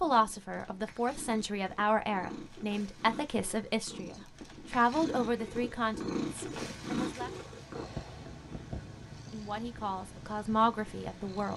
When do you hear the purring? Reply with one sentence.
The purring can be heard from 0.0 to 11.5 s.